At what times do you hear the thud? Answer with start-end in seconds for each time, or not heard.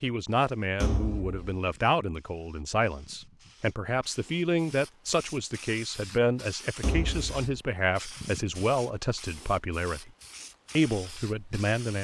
0.8-1.6, 6.8-7.5.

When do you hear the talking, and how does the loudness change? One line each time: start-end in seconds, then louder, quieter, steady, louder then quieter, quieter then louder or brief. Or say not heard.
0.0-10.1 steady
10.8-11.9 brief.